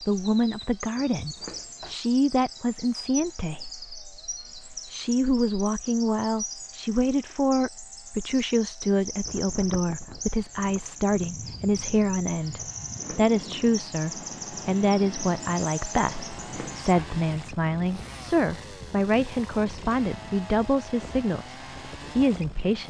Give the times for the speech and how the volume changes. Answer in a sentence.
You can hear the speech from 0.1 to 22.8 s, at a steady volume.